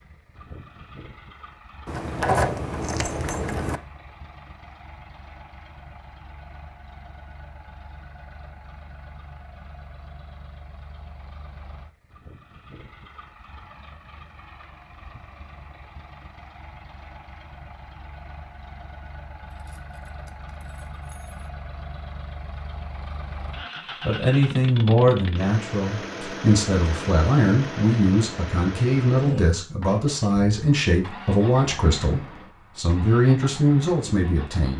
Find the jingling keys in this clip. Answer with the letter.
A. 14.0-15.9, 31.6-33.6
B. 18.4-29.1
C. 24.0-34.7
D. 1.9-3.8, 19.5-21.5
D.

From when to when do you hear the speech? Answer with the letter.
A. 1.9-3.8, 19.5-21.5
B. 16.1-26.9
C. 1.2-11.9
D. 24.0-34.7
D.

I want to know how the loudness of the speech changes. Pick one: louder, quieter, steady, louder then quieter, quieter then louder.
steady.